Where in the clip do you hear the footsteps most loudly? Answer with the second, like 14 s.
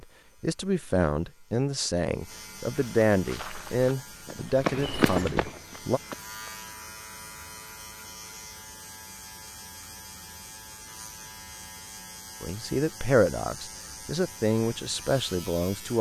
5 s.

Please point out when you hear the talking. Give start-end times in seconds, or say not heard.
0.0-6.0, 12.4-15.9.